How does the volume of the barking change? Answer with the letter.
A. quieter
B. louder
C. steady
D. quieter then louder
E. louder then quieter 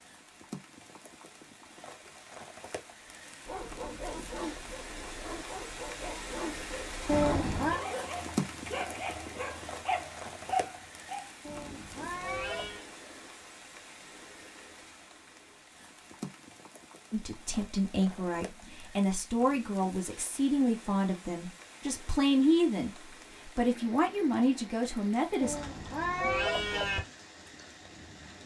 B.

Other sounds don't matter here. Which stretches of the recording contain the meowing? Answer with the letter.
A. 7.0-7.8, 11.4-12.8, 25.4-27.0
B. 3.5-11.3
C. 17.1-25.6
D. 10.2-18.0
A.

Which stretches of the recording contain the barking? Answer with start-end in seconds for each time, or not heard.
3.5-11.3.